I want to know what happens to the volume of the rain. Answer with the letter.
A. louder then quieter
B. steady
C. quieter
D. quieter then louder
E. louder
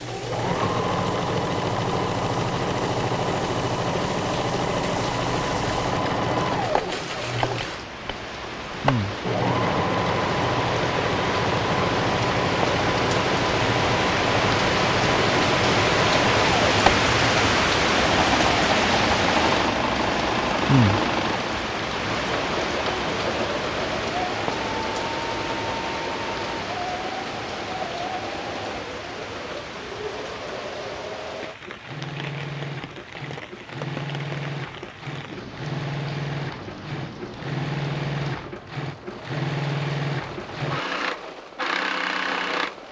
A.